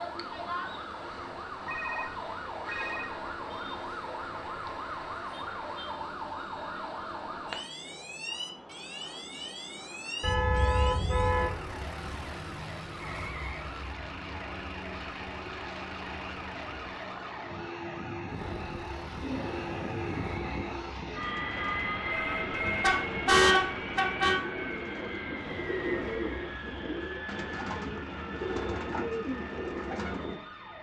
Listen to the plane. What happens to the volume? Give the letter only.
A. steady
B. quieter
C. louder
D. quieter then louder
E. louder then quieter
E.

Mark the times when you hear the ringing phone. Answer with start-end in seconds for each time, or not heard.
1.6-3.2, 22.1-22.9.